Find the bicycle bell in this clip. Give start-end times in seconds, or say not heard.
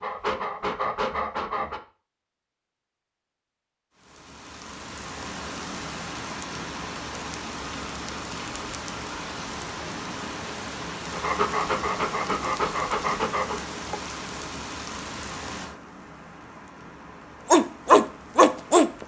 not heard.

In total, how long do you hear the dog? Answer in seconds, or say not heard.
6 s.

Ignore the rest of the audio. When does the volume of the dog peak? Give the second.
18 s.